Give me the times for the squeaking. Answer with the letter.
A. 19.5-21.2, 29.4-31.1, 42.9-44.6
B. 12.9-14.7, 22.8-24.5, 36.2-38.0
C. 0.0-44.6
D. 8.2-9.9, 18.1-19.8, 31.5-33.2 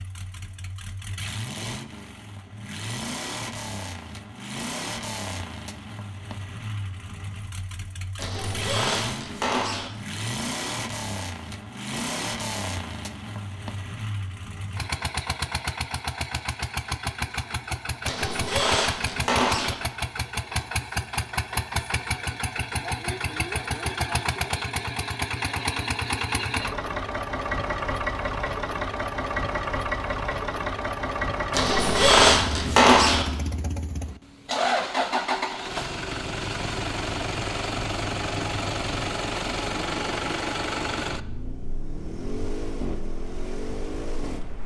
D.